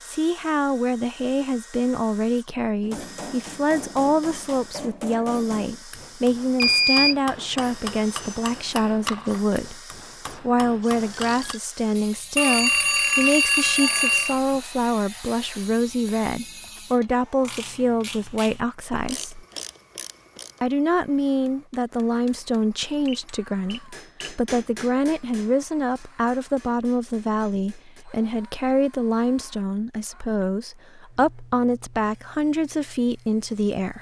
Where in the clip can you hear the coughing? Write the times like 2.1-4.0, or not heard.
not heard.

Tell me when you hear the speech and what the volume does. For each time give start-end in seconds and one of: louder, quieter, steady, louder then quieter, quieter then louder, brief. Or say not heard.
0.1-19.4 steady
20.6-33.9 steady.